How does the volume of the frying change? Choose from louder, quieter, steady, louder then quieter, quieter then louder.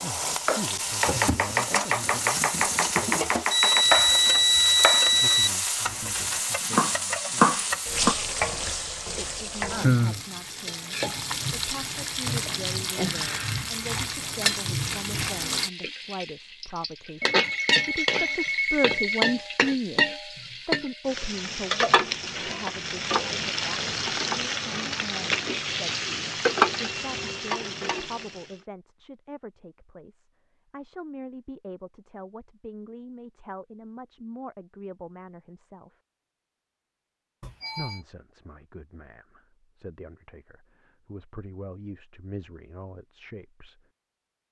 steady.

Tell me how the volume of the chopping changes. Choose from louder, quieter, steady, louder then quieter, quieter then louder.
quieter then louder.